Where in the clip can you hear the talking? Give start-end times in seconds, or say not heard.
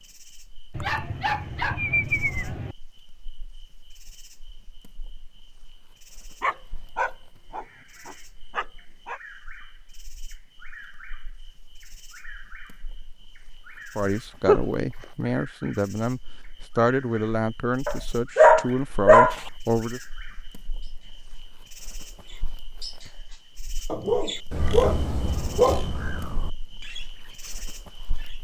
13.9-20.0.